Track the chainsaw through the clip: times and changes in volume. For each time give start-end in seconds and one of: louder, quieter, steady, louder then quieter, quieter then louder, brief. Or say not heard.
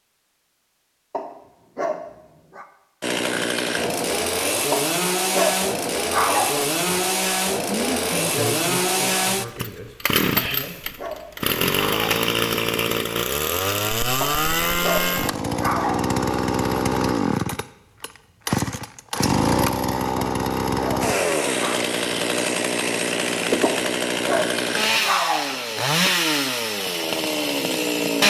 3.0-28.2 steady.